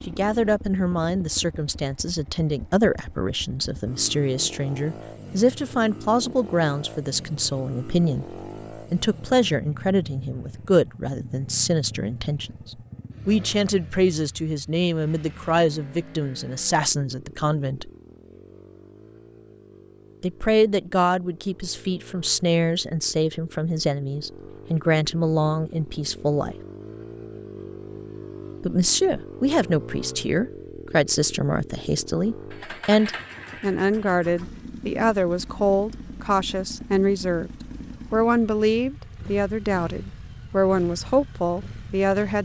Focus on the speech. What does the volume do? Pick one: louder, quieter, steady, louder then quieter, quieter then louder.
steady.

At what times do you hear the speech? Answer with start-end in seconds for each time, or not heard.
0.1-17.9, 20.2-26.6, 28.6-37.5, 38.1-42.3.